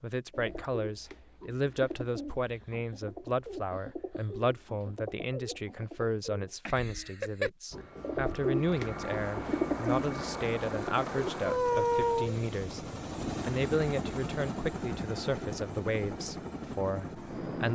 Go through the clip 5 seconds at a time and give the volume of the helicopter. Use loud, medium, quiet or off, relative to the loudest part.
off, medium, loud, medium.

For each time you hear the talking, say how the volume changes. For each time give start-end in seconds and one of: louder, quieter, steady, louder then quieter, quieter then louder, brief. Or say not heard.
0.0-17.7 steady.